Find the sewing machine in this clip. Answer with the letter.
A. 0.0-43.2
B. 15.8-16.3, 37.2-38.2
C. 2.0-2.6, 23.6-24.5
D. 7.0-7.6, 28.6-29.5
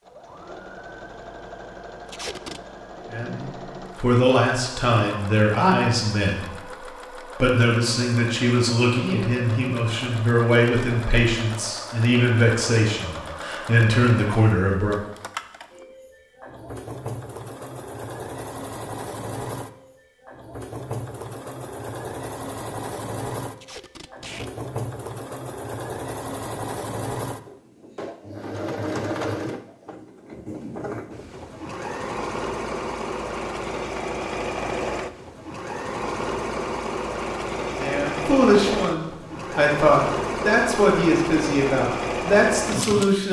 A.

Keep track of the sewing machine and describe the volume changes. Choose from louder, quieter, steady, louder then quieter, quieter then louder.
louder.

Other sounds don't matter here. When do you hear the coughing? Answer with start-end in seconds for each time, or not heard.
not heard.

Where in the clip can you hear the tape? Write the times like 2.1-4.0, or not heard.
2.0-2.6, 23.6-24.5.